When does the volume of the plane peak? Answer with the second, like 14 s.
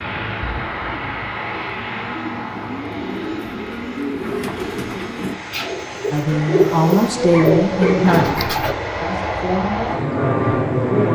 11 s.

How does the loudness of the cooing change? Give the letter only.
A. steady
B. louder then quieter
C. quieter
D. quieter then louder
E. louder
E.